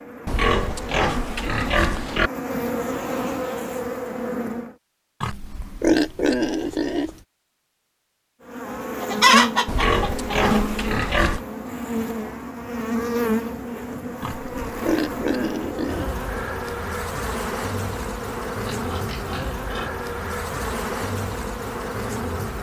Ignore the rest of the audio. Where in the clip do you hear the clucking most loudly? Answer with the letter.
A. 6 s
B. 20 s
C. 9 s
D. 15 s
C.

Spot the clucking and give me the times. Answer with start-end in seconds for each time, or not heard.
9.0-10.7.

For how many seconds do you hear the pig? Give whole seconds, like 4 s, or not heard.
9 s.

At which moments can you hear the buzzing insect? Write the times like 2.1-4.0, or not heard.
0.0-4.8, 8.4-22.5.